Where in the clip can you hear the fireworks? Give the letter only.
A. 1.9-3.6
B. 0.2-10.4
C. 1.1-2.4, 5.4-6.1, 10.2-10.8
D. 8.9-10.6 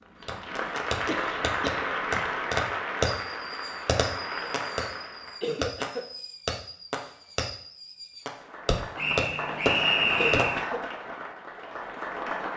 B.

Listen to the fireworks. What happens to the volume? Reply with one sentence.
The loudness of the fireworks goes down, then up.